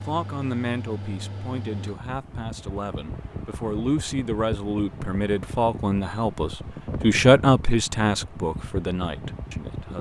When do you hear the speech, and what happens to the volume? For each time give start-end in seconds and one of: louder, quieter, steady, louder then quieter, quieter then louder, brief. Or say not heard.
0.0-9.9 louder then quieter.